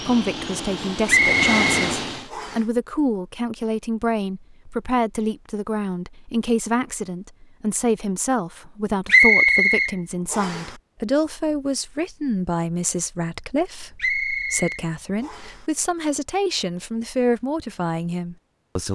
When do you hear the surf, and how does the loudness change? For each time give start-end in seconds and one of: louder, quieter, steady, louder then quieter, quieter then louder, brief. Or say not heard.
not heard.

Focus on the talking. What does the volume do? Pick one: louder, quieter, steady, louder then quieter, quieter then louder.
steady.